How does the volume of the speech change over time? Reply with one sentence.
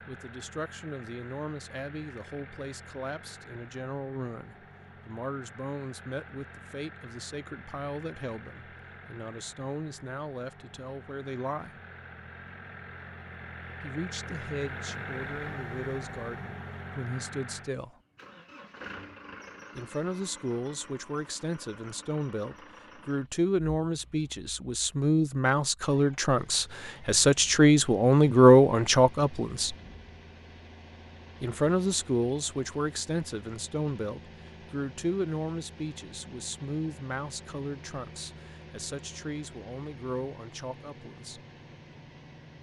The volume of the speech goes up, then down.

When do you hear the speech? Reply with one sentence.
You can hear the speech from 0.1 to 11.8 s, from 13.8 to 18.0 s, from 19.8 to 29.8 s and from 31.4 to 41.4 s.